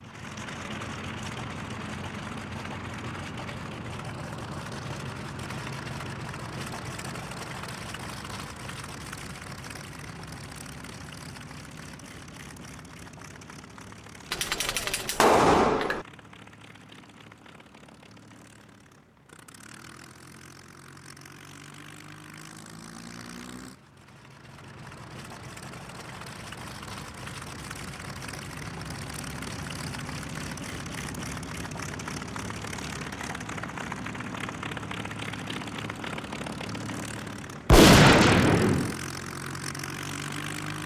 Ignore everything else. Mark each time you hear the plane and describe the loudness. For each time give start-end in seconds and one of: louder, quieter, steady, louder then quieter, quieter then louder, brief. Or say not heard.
0.0-40.8 quieter then louder.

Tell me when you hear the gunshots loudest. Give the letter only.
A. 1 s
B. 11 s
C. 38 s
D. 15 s
C.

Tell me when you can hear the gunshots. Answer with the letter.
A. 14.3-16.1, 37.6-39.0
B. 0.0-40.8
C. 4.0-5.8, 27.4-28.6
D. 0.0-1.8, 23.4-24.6
A.